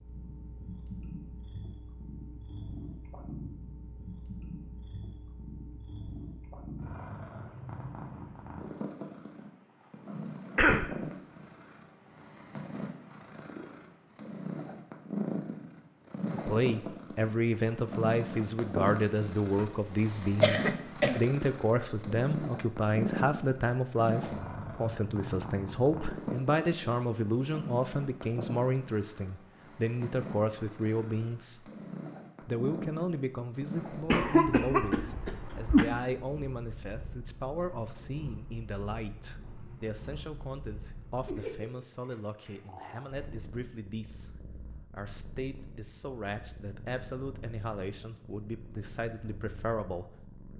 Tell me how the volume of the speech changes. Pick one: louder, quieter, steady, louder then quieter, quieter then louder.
quieter.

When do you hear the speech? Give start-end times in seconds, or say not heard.
16.4-31.7, 32.4-50.2.